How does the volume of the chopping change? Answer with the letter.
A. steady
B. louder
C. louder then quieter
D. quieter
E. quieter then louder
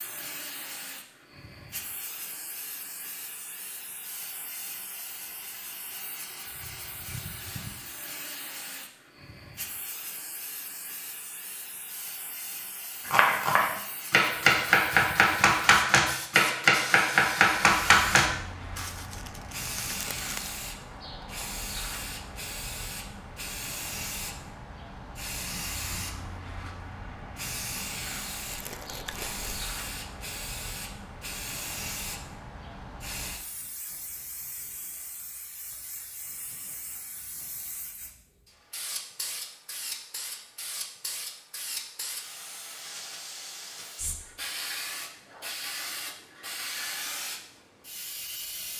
A.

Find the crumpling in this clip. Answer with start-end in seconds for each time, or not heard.
18.8-20.6, 28.4-29.4.